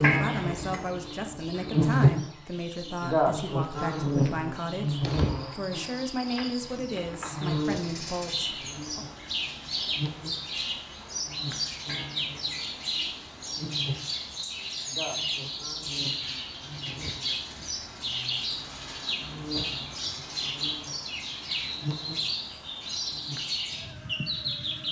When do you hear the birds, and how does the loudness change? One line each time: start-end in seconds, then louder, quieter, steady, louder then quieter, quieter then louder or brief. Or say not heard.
0.1-24.8 louder.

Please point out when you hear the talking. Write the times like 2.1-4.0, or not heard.
0.0-9.1.